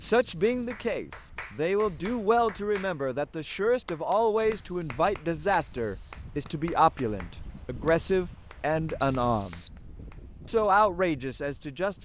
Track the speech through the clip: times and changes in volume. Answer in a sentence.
The speech can be heard from 0.0 to 9.6 s, at a steady volume; and briefly from 10.4 to 11.9 s.